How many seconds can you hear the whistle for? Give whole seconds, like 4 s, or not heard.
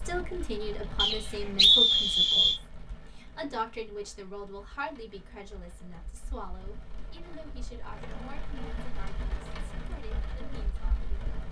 2 s.